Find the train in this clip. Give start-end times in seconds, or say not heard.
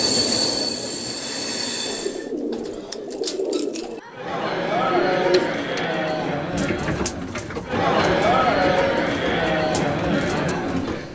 0.0-2.3.